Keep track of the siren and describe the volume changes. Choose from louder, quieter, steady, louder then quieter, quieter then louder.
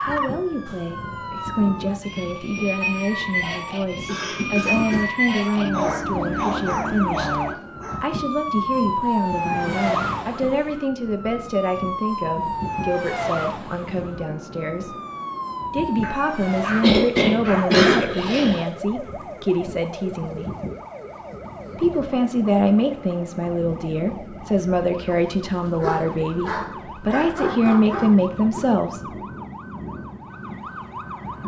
quieter.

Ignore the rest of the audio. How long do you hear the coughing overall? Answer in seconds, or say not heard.
3 s.